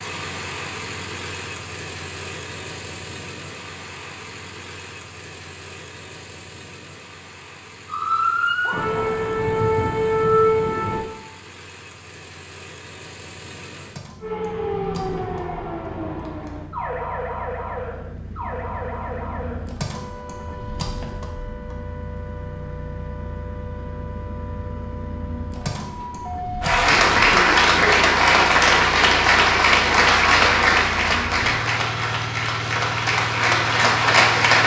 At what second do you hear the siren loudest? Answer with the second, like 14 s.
10 s.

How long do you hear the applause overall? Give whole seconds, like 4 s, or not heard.
8 s.